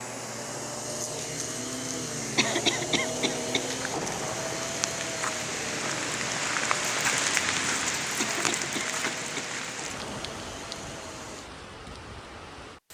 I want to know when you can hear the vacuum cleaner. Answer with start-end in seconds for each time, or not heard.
0.0-11.5.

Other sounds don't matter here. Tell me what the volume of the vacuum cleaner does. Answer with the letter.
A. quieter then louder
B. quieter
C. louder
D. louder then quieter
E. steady
B.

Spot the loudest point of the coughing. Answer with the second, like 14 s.
3 s.